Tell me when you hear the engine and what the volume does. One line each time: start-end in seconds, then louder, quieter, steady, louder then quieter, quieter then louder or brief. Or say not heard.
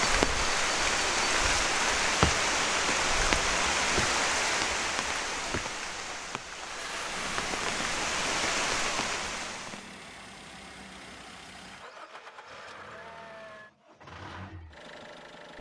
6.6-15.5 quieter.